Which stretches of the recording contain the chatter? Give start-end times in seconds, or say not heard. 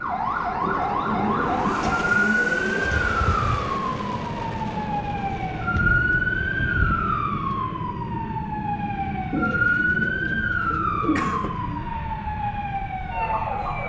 not heard.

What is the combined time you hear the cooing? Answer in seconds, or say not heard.
7 s.